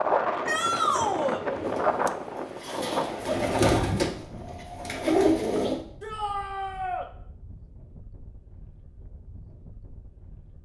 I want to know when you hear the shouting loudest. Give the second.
1 s.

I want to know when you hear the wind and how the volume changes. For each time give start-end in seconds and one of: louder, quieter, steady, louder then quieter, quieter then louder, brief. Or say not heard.
0.0-10.6 quieter.